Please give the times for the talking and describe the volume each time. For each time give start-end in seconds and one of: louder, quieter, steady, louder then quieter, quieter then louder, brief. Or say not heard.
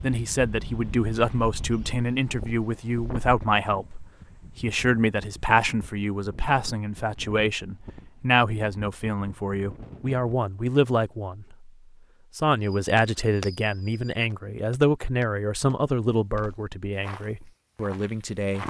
0.0-11.7 steady
12.3-18.6 quieter.